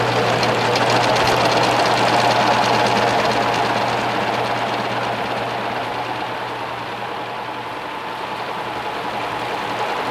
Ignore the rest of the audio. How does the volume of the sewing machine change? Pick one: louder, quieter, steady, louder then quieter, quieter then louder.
quieter.